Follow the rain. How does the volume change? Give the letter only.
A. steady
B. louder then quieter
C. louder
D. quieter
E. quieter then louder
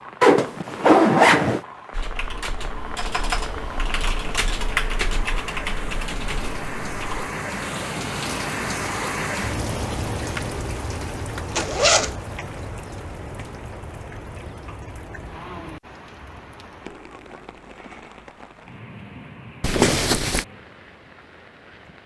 B.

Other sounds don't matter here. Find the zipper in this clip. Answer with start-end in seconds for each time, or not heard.
0.2-1.6, 11.6-12.2, 19.6-20.4.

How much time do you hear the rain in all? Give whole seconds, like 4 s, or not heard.
22 s.